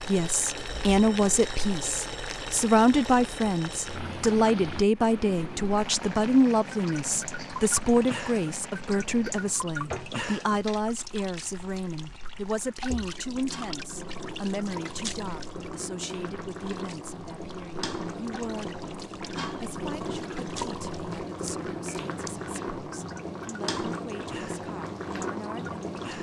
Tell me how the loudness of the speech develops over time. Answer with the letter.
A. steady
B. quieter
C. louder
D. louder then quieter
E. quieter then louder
B.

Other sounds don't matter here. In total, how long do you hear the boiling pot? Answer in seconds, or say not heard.
26 s.